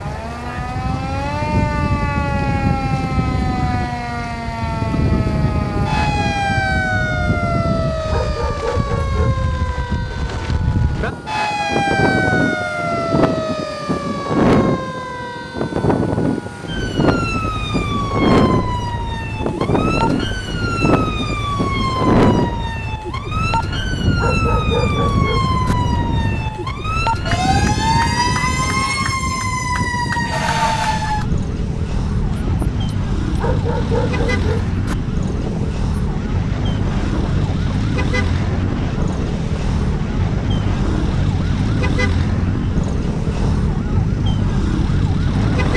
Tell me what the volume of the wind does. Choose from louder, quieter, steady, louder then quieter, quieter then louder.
quieter.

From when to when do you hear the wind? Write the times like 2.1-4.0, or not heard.
0.0-45.7.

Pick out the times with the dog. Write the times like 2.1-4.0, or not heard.
8.0-9.3, 24.1-25.8, 33.2-35.0.